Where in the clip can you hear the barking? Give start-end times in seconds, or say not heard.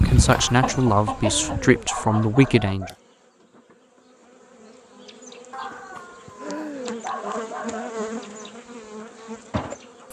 0.3-3.0, 5.5-8.1.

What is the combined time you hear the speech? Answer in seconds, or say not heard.
3 s.